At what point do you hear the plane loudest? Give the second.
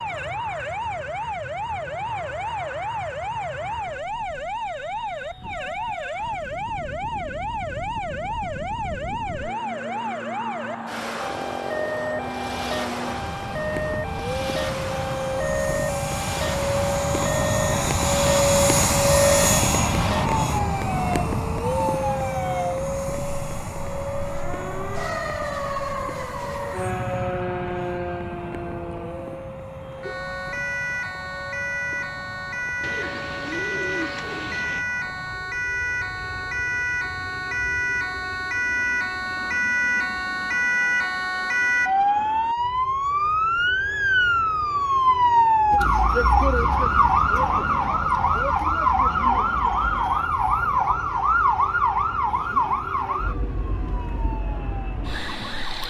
19 s.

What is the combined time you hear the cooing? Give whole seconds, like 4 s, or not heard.
2 s.